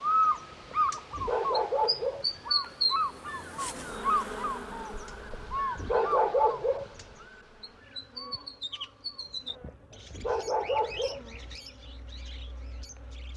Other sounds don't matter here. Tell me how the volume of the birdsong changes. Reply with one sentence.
The loudness of the birdsong goes down.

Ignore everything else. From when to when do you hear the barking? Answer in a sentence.
You can hear the barking from 0.2 to 2.5 s, from 4.8 to 7.2 s and from 9.2 to 11.4 s.